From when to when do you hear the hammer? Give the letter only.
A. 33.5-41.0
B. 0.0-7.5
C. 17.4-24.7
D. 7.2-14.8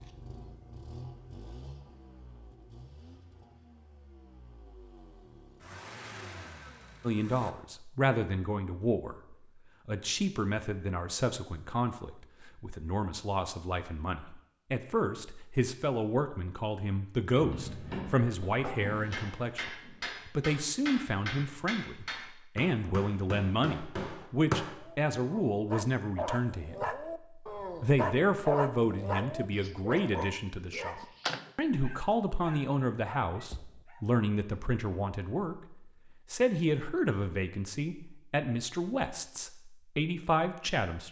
C.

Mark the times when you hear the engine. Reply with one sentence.
The engine can be heard from 0.0 to 7.5 s.